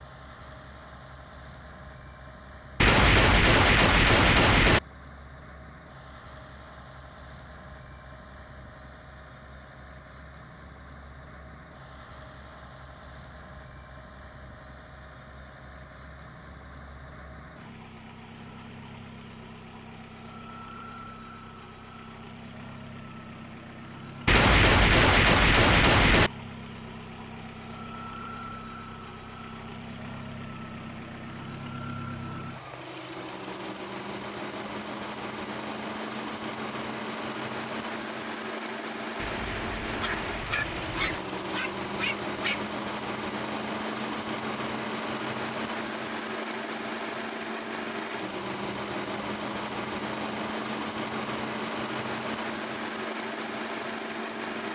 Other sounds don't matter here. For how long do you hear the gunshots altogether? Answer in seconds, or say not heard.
6 s.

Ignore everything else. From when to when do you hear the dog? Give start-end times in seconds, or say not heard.
40.0-42.6.